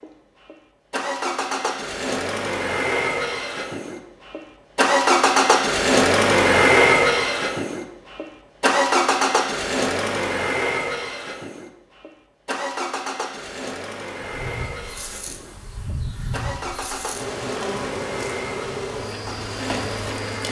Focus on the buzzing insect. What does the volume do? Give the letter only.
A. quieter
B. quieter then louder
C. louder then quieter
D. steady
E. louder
E.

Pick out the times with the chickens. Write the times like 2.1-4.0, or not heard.
not heard.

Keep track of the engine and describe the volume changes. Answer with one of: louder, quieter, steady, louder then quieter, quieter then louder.
louder then quieter.